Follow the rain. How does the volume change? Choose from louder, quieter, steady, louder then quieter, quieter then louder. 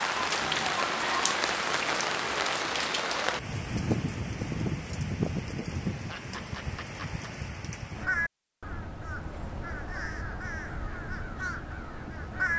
quieter.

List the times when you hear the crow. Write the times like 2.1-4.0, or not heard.
7.9-12.5.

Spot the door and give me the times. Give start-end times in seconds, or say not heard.
not heard.